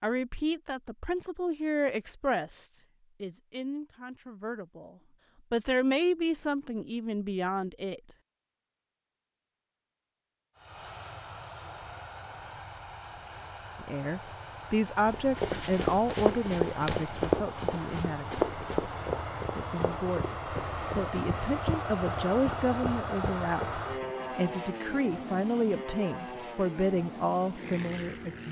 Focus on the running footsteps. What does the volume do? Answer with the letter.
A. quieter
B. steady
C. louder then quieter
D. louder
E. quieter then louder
A.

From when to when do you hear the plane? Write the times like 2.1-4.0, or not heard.
10.6-28.4.